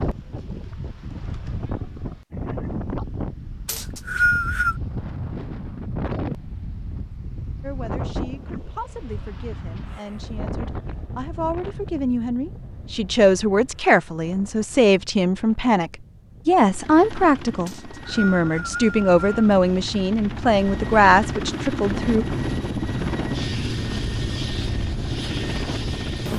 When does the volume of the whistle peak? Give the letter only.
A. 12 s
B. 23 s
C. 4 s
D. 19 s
C.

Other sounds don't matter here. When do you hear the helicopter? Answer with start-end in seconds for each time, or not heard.
16.6-26.3.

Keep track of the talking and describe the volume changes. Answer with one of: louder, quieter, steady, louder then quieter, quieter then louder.
louder.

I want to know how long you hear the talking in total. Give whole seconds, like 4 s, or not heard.
15 s.